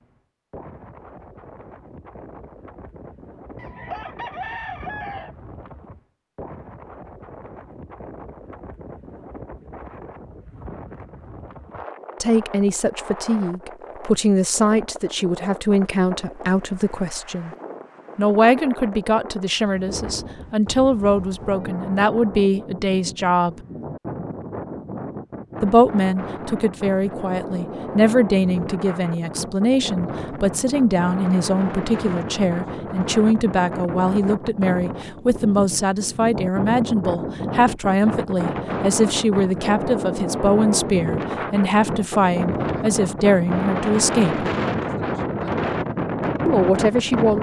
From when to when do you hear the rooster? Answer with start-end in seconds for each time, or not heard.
3.5-5.3.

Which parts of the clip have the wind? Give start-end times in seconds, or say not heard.
0.0-47.3.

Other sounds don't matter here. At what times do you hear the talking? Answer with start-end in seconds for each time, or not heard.
12.2-17.5, 18.1-23.6, 25.6-44.5, 46.5-47.3.